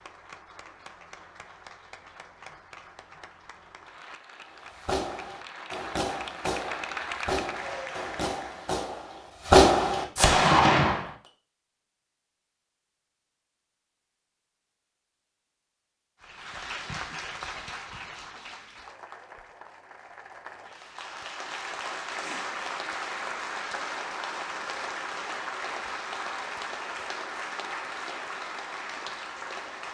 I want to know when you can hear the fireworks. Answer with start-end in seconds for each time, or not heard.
4.6-11.1.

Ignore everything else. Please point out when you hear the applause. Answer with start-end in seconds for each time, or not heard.
0.0-8.8, 16.2-29.9.